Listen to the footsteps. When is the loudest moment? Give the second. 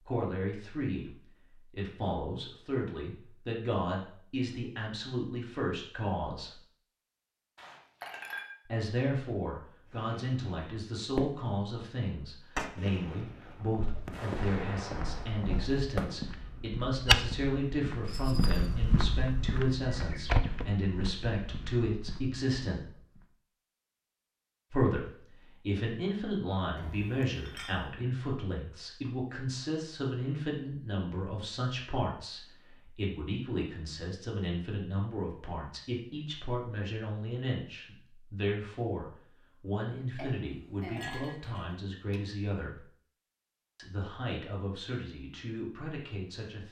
17 s.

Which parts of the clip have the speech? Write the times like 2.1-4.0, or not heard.
0.0-6.6, 8.7-22.8, 24.7-42.9, 43.8-46.6.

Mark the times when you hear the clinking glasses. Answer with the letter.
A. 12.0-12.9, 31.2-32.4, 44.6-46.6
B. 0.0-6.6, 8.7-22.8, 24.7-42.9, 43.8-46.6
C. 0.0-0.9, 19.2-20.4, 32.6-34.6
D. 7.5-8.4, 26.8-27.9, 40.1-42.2
D.